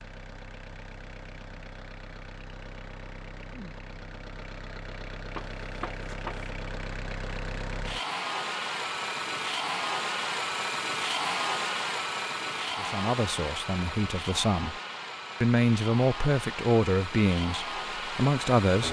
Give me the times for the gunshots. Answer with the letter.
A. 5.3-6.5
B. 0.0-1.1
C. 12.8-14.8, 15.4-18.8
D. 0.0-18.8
A.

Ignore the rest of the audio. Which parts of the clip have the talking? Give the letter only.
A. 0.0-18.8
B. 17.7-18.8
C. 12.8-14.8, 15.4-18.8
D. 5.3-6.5
C.